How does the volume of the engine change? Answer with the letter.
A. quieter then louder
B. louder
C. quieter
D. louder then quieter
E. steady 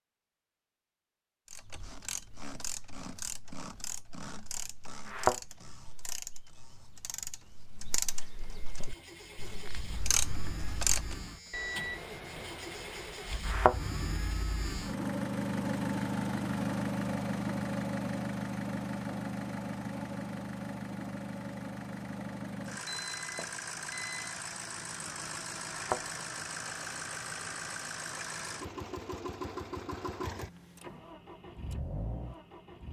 D.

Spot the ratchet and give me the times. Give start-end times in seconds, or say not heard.
1.4-11.2.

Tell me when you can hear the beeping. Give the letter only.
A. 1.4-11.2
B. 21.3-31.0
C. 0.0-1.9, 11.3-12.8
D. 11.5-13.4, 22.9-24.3
D.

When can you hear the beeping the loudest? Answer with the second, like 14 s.
12 s.